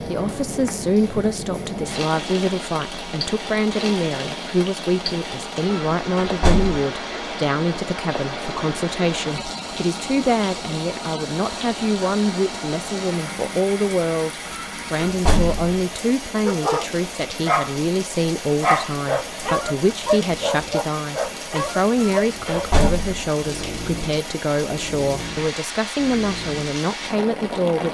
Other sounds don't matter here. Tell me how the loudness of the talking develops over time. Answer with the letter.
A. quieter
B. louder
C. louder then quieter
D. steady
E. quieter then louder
D.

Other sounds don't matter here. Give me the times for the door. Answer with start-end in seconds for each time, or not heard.
5.7-6.8, 14.5-15.8, 22.0-23.3.